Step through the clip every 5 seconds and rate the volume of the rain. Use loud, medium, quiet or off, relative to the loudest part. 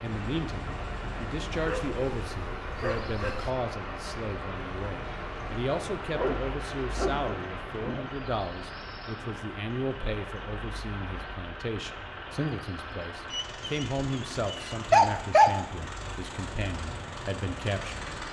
loud, loud, medium, medium.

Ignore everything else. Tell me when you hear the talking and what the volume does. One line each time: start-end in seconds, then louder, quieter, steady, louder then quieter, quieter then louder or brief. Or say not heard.
0.0-18.1 steady.